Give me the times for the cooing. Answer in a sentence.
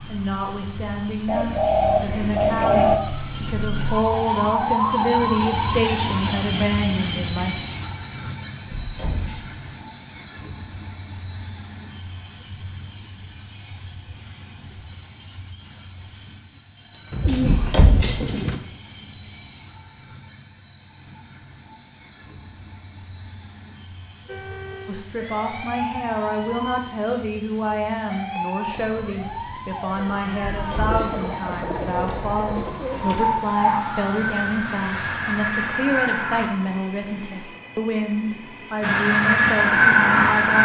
You can hear the cooing from 1.2 to 3.0 s, from 17.1 to 18.6 s and from 30.5 to 33.3 s.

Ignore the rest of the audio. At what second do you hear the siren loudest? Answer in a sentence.
The volume of the siren peaks at 40 seconds.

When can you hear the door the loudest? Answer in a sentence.
The volume of the door peaks at 18 seconds.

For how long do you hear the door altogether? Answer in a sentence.
The door can be heard for 3 seconds in total.